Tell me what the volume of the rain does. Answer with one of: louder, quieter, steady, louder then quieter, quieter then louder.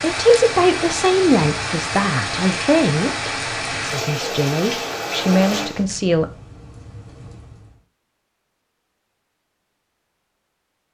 quieter.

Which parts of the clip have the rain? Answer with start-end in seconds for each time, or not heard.
0.0-7.8.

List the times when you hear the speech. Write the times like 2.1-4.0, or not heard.
0.0-6.2.